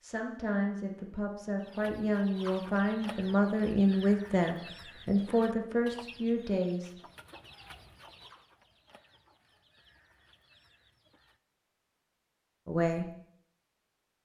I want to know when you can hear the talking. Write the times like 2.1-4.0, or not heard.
0.0-7.0, 12.7-13.1.